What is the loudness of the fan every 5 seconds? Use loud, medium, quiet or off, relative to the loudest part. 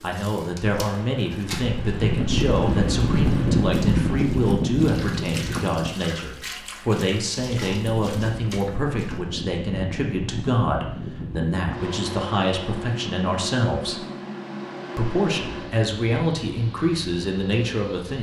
loud, medium, medium, quiet.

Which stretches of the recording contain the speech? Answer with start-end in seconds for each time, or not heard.
0.0-14.1, 14.9-18.1.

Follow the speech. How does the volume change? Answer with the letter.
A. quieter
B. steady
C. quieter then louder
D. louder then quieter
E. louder
B.